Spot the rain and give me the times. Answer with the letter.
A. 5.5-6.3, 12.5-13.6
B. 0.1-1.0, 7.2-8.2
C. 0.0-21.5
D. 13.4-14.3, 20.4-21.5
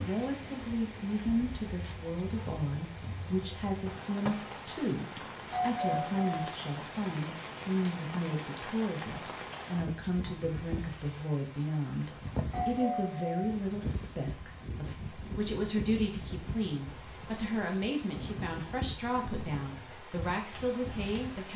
C.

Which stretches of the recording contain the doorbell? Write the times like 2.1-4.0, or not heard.
5.5-6.3, 12.5-13.6.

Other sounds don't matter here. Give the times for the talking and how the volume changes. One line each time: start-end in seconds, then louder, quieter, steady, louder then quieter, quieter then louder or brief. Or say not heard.
0.0-21.5 steady.